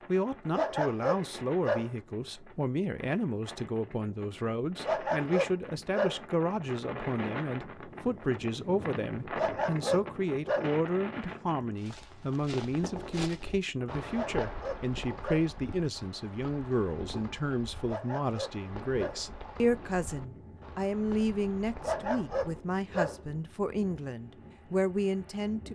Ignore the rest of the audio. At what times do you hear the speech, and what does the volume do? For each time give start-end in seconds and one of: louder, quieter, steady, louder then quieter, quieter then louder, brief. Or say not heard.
0.1-25.7 steady.